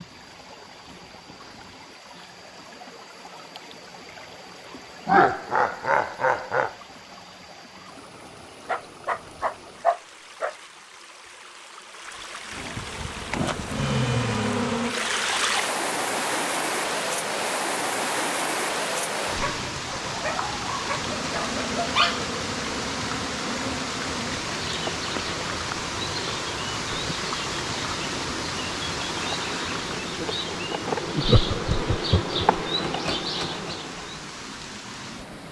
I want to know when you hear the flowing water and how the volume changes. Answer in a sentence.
You can hear the flowing water from 0.0 to 35.4 s, getting louder then quieter.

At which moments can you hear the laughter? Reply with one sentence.
You can hear the laughter from 5.0 to 6.7 s and from 31.2 to 32.4 s.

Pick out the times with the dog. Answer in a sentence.
The dog can be heard from 8.7 to 10.6 s and from 19.4 to 22.2 s.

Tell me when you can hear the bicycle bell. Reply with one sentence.
You can't hear the bicycle bell here.